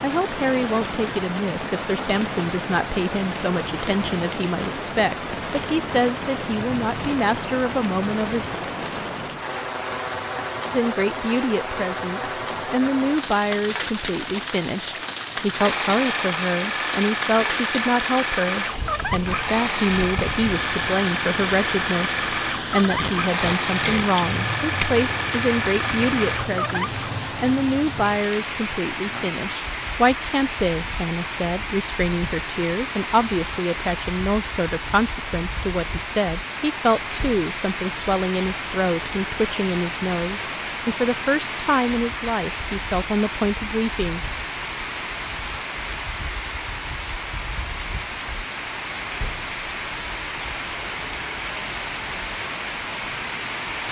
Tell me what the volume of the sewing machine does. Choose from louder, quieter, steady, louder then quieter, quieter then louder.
steady.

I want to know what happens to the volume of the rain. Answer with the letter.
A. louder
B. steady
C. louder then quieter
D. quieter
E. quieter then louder
B.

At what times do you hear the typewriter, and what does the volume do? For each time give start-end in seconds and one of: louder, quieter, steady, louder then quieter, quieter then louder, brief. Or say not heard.
not heard.